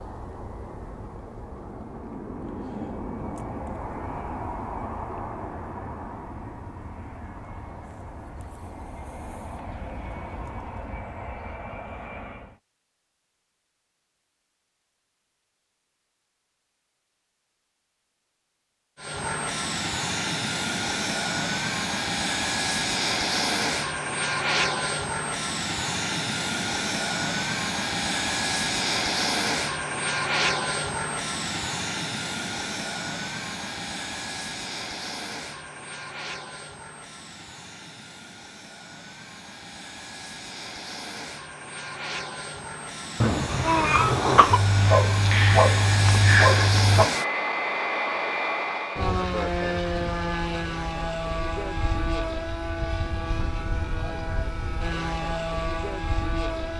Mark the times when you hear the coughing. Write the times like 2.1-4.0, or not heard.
43.2-44.6.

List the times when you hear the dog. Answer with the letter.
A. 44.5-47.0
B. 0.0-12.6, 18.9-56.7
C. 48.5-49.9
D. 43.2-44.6
A.